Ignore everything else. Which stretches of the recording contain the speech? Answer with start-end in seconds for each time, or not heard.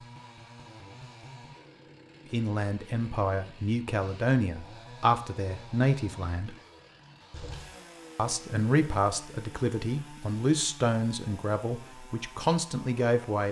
2.3-6.5, 8.2-13.4.